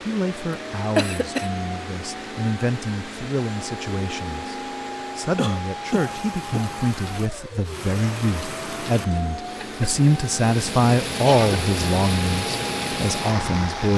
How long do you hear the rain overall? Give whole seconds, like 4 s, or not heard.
14 s.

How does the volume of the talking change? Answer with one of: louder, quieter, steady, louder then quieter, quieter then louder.
louder.